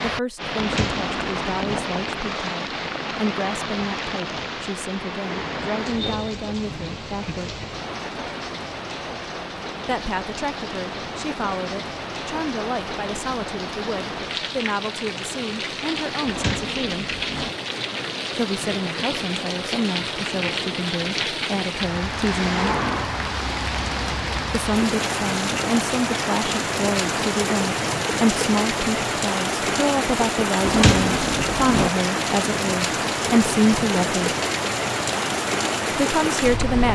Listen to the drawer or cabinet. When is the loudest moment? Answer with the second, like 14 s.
31 s.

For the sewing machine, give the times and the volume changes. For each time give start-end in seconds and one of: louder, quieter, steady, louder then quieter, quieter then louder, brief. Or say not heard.
not heard.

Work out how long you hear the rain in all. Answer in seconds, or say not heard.
37 s.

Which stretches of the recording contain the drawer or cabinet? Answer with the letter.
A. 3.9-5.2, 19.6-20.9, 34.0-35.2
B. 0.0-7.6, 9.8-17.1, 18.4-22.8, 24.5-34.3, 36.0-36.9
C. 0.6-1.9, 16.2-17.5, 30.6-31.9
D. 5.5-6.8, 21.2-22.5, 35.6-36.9
C.